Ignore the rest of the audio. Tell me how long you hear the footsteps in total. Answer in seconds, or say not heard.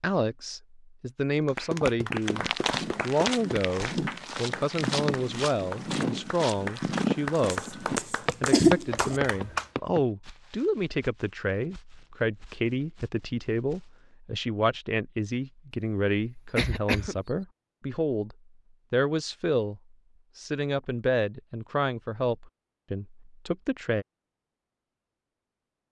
12 s.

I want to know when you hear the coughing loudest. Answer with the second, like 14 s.
9 s.